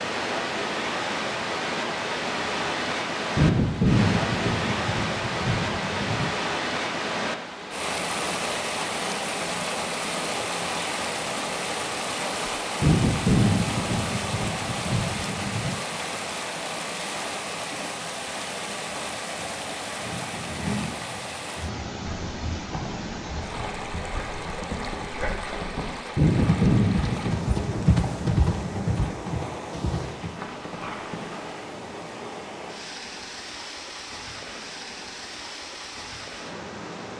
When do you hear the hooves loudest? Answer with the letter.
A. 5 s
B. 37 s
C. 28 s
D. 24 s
C.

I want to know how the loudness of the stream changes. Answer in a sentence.
The volume of the stream goes down.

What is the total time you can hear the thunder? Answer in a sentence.
You can hear the thunder for 9 seconds altogether.